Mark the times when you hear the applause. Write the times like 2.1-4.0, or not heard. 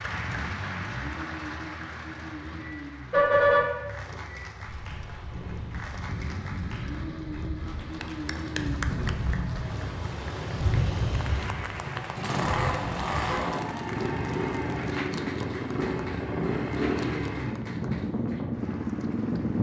0.0-19.5.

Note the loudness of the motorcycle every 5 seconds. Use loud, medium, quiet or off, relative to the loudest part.
medium, medium, loud, loud.